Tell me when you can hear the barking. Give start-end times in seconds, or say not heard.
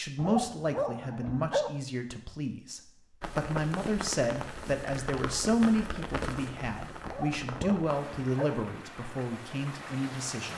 0.1-1.7, 7.0-8.6.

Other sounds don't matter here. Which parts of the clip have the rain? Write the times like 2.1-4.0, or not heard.
3.2-10.5.